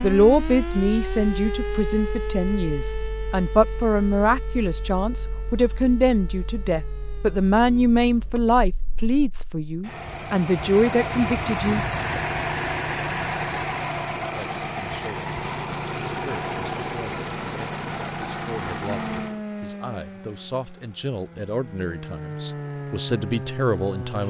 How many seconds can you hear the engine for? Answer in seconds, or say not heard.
24 s.